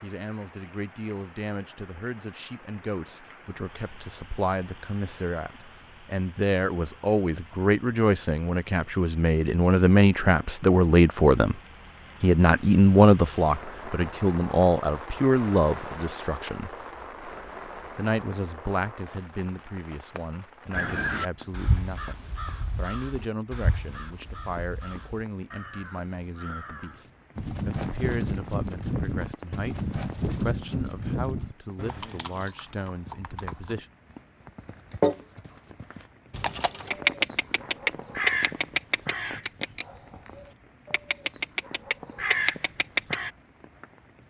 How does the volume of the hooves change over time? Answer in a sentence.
The loudness of the hooves goes down, then up.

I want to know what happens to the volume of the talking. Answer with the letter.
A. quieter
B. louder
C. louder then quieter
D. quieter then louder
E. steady
C.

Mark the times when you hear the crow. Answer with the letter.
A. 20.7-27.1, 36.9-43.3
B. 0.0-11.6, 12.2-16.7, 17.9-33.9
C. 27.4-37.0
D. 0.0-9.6
A.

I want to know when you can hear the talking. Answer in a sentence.
The talking can be heard from 0.0 to 11.6 s, from 12.2 to 16.7 s and from 17.9 to 33.9 s.